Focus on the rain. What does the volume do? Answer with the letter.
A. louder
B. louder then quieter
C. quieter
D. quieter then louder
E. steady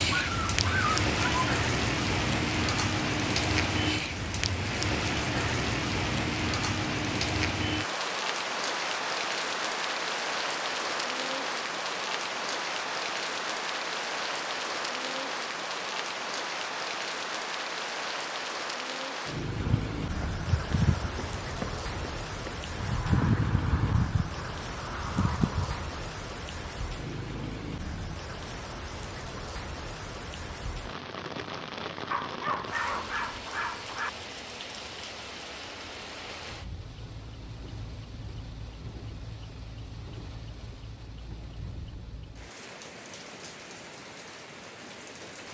C.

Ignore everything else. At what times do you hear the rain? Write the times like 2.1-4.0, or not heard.
0.0-45.4.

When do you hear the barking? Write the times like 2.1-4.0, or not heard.
0.1-1.6, 32.1-34.1.